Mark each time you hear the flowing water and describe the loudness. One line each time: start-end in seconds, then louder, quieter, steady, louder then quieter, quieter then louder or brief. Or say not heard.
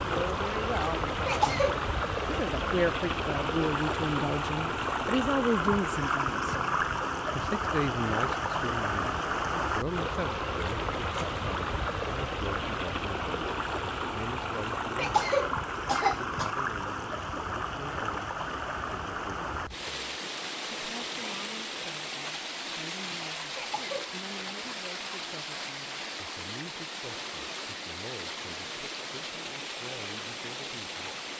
0.0-31.3 quieter.